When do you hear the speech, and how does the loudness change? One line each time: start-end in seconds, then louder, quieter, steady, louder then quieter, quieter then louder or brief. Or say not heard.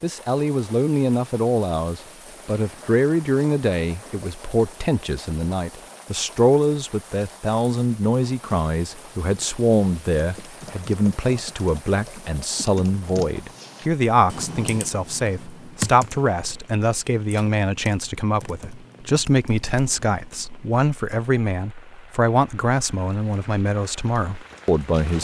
0.0-25.1 steady.